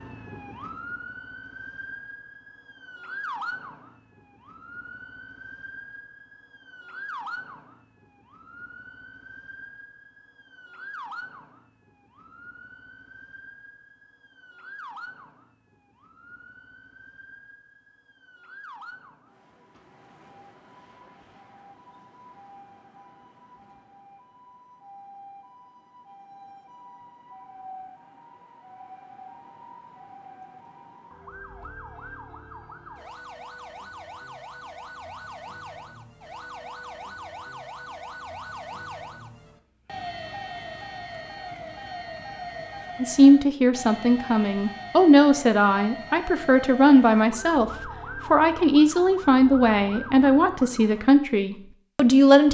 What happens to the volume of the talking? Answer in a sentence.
The volume of the talking stays about the same.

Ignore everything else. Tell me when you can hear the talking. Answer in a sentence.
The talking can be heard from 43.0 to 52.4 s.